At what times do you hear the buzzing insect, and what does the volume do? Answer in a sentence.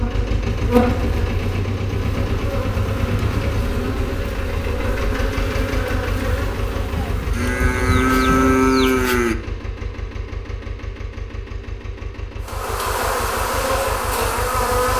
The buzzing insect can be heard from 0.0 to 8.8 s, getting quieter; and briefly from 12.4 to 14.9 s.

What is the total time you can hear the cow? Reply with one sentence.
The cow can be heard for 3 seconds in total.